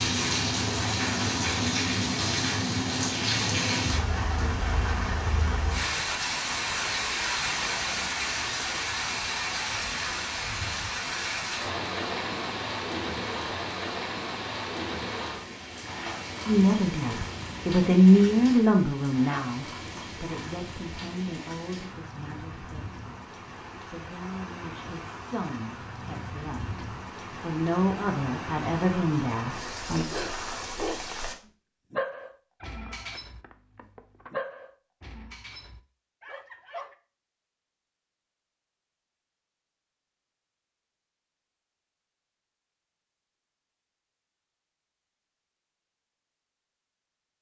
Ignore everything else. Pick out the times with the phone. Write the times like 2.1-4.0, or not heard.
32.6-34.4.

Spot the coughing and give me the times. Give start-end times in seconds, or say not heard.
not heard.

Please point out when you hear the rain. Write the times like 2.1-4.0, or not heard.
0.0-31.4.